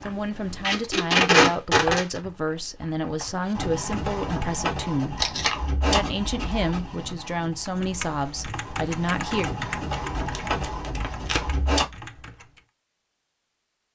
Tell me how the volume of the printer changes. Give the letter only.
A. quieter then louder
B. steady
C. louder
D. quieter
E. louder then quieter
A.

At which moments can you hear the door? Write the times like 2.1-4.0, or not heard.
not heard.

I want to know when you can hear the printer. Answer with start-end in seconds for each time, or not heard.
3.5-11.8.